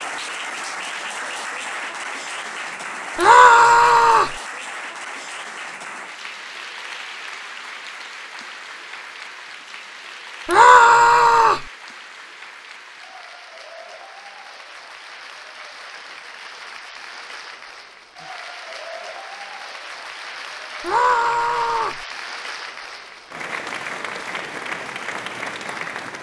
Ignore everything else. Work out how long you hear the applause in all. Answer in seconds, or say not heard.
26 s.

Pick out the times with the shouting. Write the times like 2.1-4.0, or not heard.
3.1-4.3, 10.4-11.7, 20.8-22.0.